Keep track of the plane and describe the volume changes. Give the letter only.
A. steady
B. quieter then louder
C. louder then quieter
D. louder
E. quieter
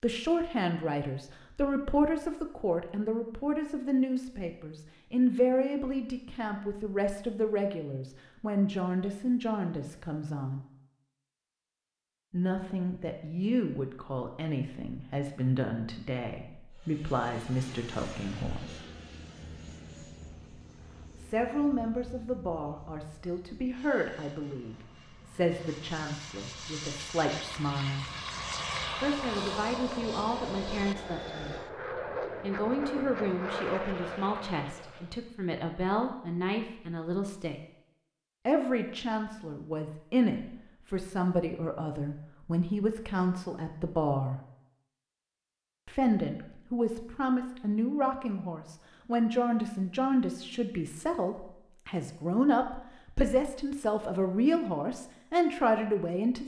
B.